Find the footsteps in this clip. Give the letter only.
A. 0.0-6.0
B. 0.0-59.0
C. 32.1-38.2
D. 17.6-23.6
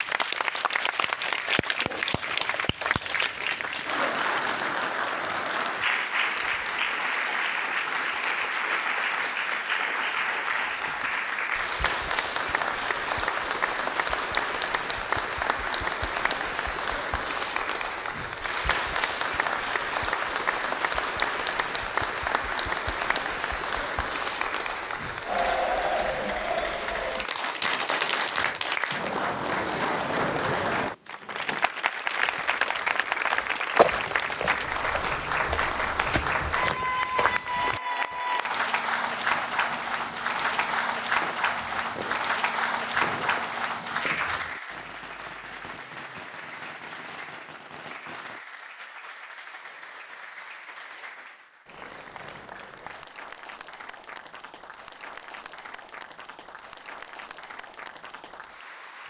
C.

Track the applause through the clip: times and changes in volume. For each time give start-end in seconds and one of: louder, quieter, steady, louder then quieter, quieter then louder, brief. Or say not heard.
0.0-59.0 quieter.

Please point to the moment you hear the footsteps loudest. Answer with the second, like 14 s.
34 s.